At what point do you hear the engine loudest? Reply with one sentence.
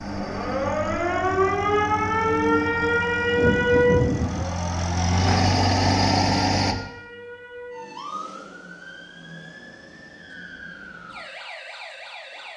The loudest moment of the engine is at 6 seconds.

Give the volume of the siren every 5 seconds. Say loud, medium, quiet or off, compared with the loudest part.
loud, quiet, quiet.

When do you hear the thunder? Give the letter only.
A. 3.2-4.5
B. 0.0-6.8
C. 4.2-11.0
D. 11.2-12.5
A.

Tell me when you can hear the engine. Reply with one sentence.
You can hear the engine from 0.0 to 6.8 s.